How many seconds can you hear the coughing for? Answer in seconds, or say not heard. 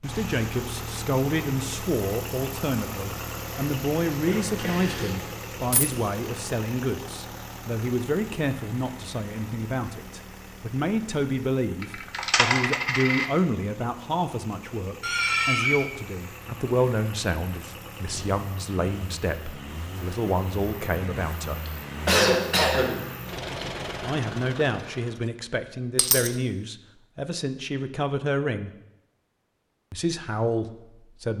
4 s.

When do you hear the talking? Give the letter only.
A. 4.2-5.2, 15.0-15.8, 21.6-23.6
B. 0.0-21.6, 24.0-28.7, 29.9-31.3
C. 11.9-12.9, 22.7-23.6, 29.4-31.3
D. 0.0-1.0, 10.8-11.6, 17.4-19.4
B.